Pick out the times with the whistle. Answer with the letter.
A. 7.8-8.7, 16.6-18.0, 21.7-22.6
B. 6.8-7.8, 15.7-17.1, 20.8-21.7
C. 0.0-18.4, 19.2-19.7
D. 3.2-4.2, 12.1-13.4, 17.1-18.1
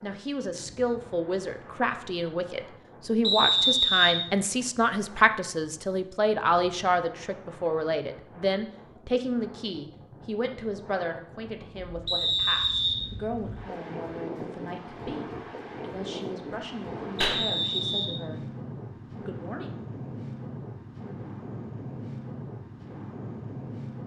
D.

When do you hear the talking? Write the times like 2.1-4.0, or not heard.
0.0-18.4, 19.2-19.7.